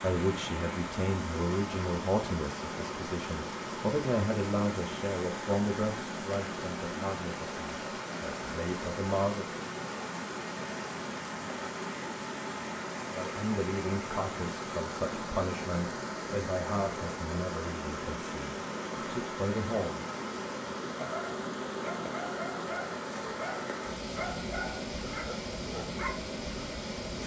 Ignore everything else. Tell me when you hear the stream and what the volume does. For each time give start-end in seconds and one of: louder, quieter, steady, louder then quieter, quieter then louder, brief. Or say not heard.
0.0-27.2 steady.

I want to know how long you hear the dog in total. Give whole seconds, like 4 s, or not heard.
5 s.